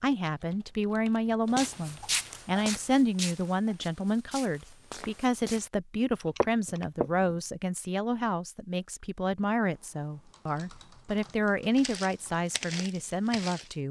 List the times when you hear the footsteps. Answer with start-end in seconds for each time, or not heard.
1.6-7.3, 11.8-13.8.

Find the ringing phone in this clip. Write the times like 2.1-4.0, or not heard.
not heard.